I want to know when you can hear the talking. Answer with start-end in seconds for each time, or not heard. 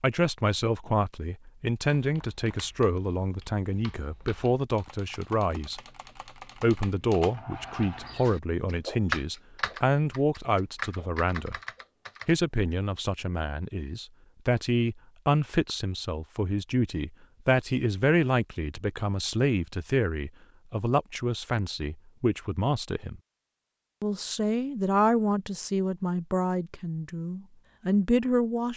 0.0-5.8, 6.6-11.6, 12.2-23.2, 24.0-28.7.